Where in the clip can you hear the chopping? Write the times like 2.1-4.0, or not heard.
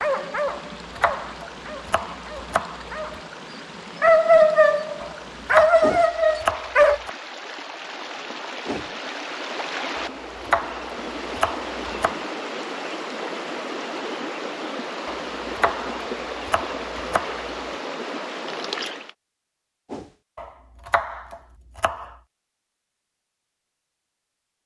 0.5-3.0, 5.0-7.1, 9.9-12.2, 15.1-17.5, 20.4-22.1.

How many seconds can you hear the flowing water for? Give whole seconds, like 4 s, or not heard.
19 s.